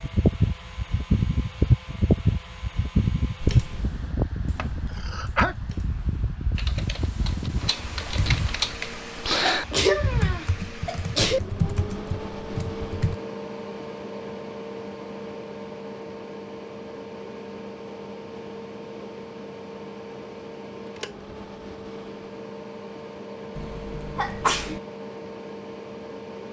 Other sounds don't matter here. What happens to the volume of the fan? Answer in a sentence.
The volume of the fan goes down.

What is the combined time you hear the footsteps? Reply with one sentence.
The footsteps can't be heard in this clip.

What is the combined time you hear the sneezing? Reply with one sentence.
You can hear the sneezing for 4 seconds altogether.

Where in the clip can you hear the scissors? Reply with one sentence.
You can't hear the scissors here.